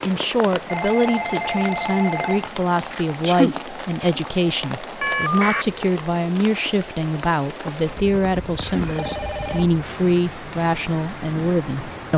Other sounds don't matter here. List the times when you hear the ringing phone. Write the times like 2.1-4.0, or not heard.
0.7-2.5, 5.0-5.7, 8.6-9.7.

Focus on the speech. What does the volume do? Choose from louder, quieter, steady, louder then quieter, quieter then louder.
steady.